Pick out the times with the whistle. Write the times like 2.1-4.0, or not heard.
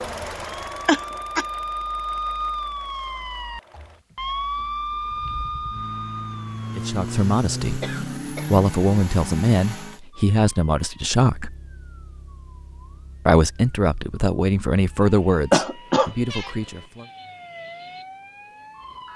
not heard.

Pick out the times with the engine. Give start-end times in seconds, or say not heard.
0.0-10.0.